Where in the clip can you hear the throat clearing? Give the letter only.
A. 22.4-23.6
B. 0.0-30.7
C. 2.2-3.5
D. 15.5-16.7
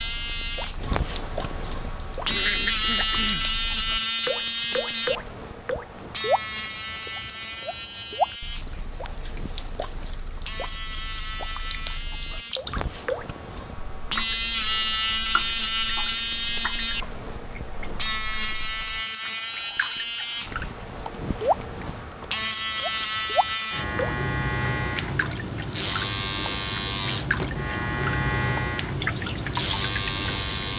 C.